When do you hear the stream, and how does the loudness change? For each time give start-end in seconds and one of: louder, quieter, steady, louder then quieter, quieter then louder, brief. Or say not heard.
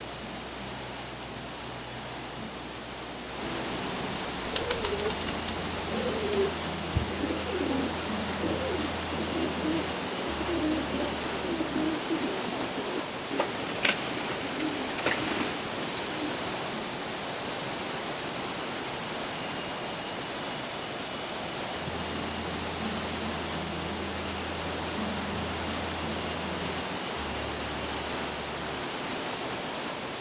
0.0-30.1 steady.